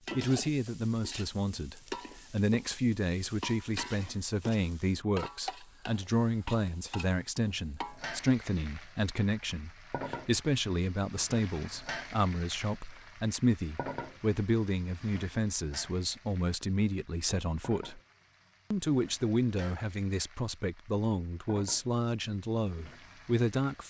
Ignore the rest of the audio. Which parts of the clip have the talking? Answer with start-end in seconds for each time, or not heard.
0.1-18.0, 18.7-23.8.